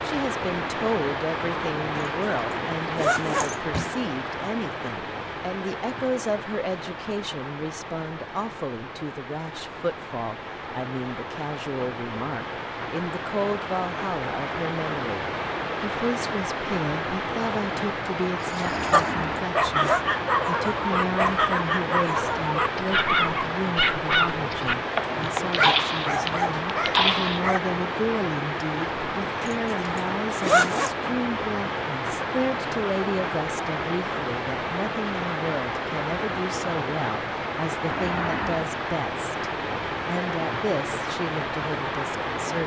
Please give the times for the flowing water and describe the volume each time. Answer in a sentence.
The flowing water can be heard from 0.0 to 42.6 s, at a steady volume.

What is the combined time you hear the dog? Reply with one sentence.
The dog can be heard for 9 seconds in total.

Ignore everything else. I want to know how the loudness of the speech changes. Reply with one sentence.
The loudness of the speech stays about the same.